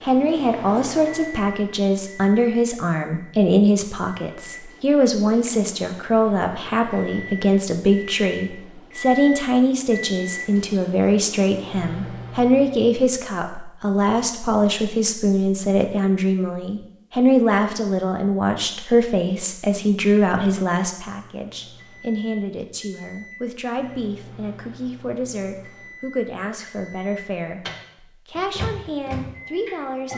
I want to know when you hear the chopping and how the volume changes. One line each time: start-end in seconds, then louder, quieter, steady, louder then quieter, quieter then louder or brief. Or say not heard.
not heard.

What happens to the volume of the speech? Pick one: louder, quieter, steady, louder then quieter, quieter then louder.
quieter.